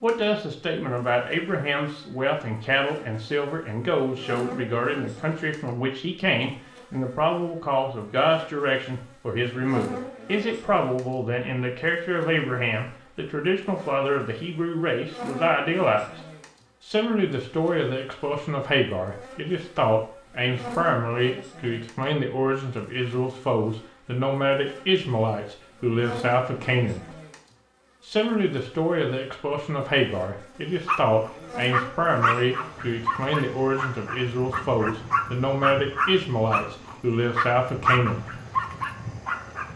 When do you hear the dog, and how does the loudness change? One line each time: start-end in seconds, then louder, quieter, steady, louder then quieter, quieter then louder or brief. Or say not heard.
30.9-39.7 quieter then louder.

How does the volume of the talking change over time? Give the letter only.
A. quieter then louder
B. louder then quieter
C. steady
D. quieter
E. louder
C.